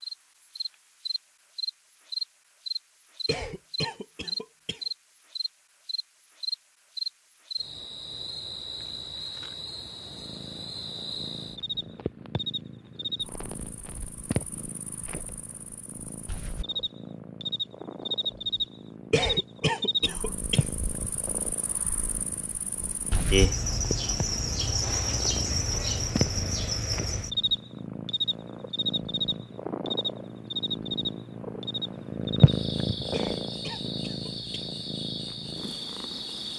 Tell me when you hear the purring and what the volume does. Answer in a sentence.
The purring can be heard from 10.1 to 36.5 s, getting louder.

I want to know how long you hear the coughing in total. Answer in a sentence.
You can hear the coughing for 5 seconds altogether.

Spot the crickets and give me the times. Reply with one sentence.
You can hear the crickets from 0.0 to 36.5 s.